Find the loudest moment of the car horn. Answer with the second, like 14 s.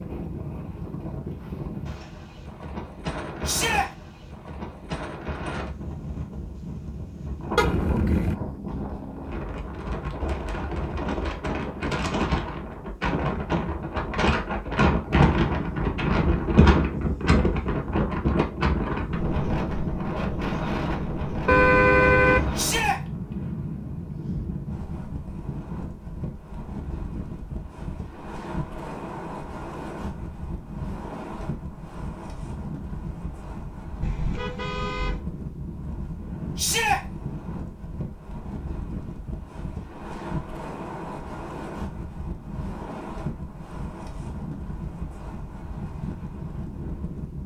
22 s.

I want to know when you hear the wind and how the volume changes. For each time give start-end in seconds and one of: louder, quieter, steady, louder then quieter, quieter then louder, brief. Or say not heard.
0.0-47.4 louder then quieter.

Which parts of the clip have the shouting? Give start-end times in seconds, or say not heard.
3.5-3.9, 22.6-23.0, 36.5-37.0.